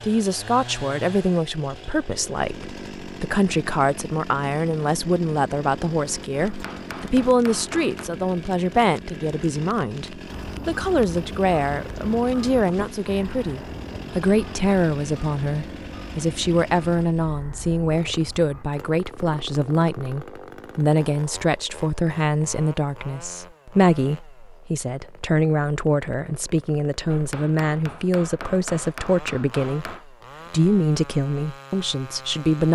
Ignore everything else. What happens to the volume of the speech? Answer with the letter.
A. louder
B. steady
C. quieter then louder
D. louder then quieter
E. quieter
B.